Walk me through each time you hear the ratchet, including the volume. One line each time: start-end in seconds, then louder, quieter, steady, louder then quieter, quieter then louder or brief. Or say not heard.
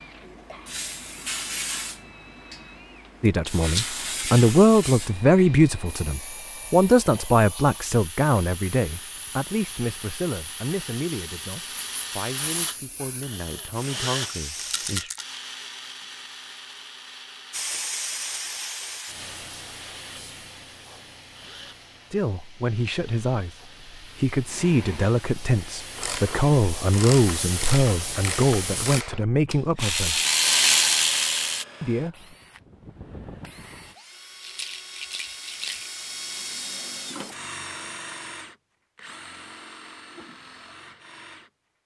25.9-31.6 louder.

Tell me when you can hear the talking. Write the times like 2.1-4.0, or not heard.
3.2-15.2, 22.1-30.2, 31.8-32.4.